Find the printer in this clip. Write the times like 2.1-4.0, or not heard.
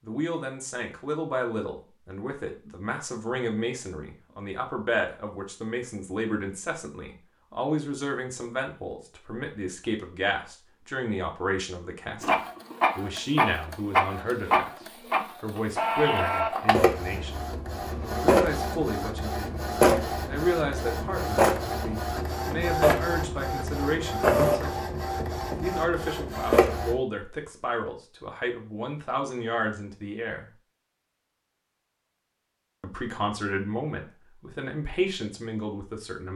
12.2-27.0.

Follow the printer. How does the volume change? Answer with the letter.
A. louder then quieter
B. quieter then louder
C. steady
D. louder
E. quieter
C.